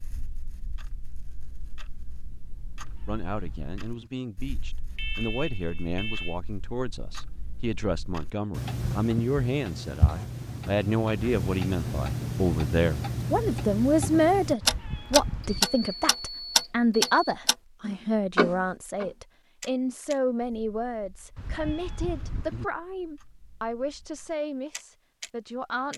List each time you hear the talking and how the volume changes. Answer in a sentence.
The talking can be heard from 3.0 to 25.9 s, getting louder then quieter.